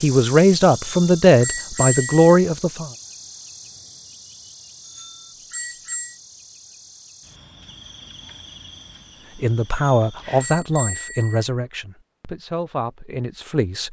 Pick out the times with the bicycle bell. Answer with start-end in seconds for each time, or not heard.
0.8-2.5, 4.8-6.2, 9.7-11.4.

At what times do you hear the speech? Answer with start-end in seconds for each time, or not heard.
0.0-2.9, 9.4-13.8.